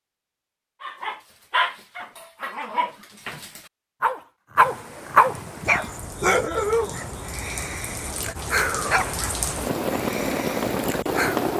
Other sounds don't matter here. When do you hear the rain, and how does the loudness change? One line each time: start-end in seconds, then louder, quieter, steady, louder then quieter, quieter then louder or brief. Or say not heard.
4.5-11.5 louder.